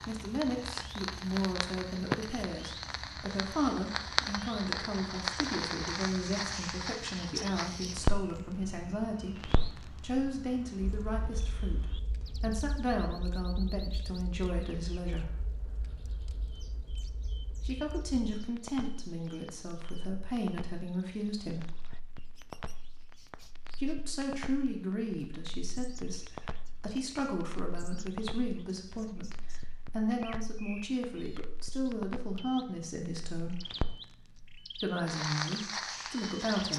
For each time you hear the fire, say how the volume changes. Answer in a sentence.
You can hear the fire from 0.0 to 36.7 s, getting quieter then louder.